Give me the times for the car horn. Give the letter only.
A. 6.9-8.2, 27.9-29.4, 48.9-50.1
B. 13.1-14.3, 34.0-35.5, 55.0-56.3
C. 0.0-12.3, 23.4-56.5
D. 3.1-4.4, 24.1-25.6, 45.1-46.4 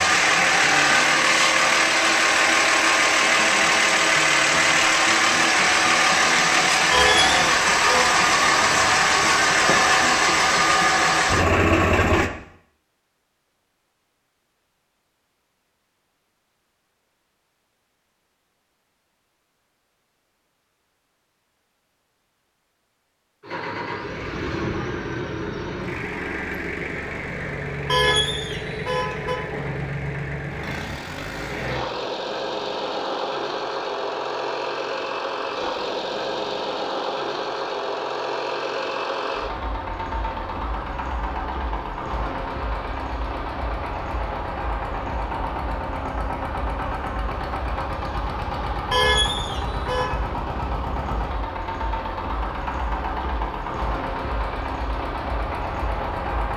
A.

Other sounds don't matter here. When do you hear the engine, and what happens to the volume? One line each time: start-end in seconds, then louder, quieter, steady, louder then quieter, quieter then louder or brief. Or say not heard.
0.0-12.3 steady
23.4-56.5 steady.